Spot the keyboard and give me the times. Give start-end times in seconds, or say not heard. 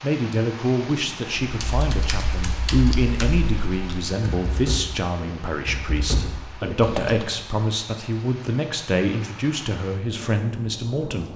1.4-7.3.